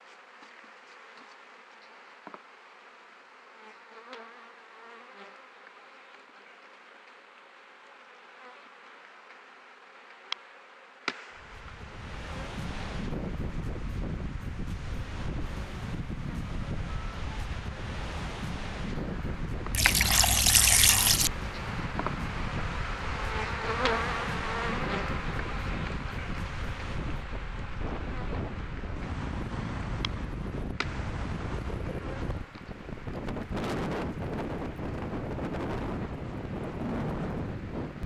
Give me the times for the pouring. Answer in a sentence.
The pouring can be heard from 19.7 to 21.3 s.